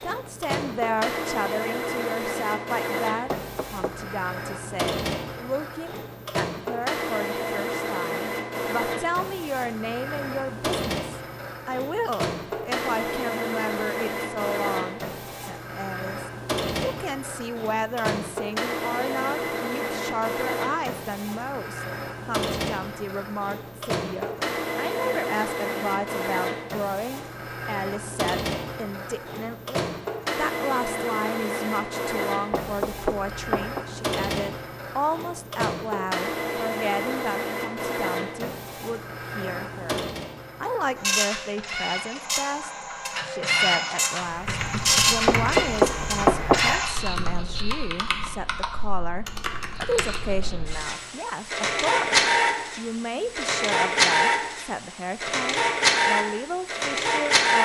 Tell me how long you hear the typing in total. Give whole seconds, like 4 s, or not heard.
6 s.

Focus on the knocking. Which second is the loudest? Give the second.
46 s.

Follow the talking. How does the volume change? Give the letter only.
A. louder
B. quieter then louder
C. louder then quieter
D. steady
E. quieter
D.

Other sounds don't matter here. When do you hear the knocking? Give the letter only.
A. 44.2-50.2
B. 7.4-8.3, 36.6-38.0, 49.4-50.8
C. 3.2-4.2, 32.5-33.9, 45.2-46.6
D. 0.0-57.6
C.